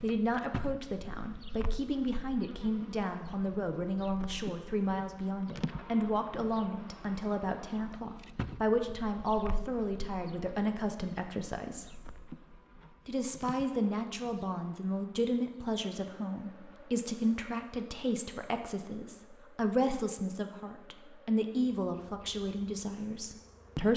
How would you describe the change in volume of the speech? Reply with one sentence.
The loudness of the speech stays about the same.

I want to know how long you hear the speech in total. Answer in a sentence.
The speech can be heard for 23 seconds in total.